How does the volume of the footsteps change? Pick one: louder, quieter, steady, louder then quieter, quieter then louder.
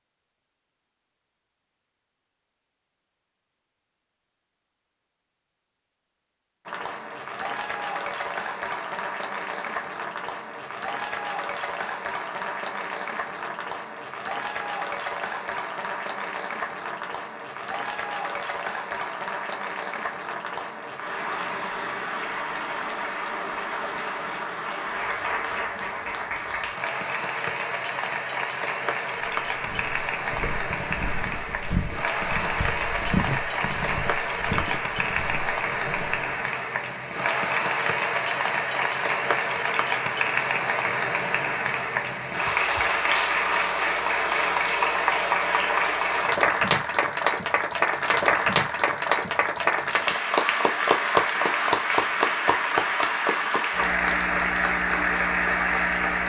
louder then quieter.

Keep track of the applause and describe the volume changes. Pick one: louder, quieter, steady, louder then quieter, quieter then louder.
louder.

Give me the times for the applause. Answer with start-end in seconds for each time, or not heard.
6.7-56.2.